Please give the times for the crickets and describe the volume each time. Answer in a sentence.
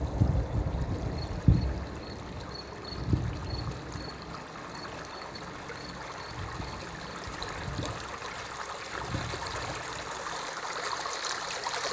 The crickets can be heard from 0.0 to 11.8 s, getting quieter.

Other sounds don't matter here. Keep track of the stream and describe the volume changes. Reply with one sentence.
The volume of the stream goes up.